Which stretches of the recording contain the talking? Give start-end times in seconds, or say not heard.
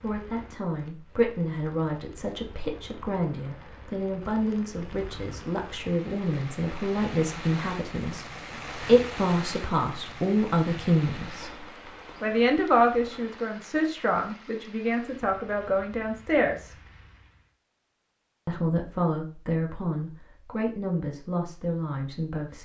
0.0-16.8, 18.4-22.6.